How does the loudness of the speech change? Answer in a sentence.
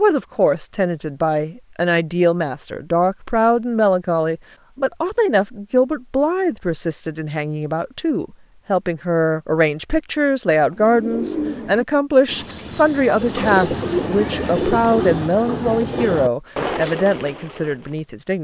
The volume of the speech stays about the same.